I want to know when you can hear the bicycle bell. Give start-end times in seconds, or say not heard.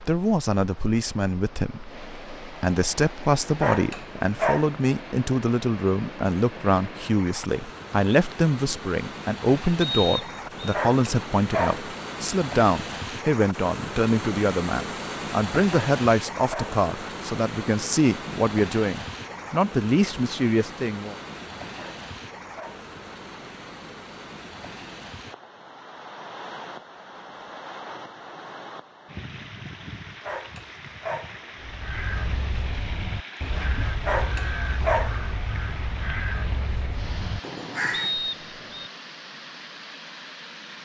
not heard.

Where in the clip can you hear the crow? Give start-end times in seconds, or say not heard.
31.6-38.1.